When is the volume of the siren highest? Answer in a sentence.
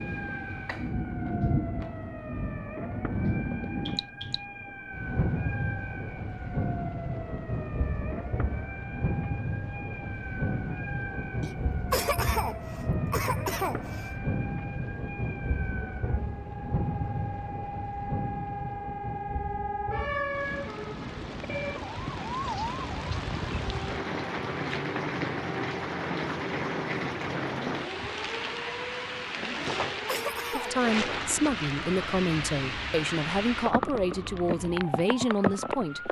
The volume of the siren peaks at 20 seconds.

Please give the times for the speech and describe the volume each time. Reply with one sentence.
You can hear the speech from 30.5 to 36.0 s, at a steady volume.